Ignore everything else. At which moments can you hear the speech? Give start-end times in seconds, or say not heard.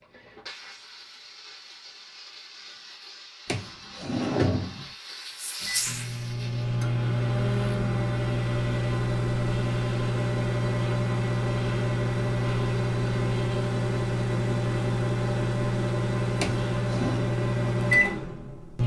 not heard.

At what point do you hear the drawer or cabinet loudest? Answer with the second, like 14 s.
4 s.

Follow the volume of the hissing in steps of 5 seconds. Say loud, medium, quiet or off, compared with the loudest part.
medium, loud, off, off.